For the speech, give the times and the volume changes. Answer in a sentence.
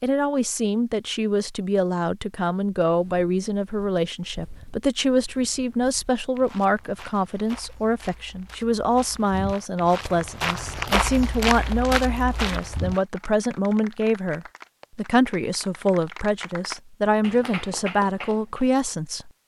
The speech can be heard from 0.0 to 19.3 s, at a steady volume.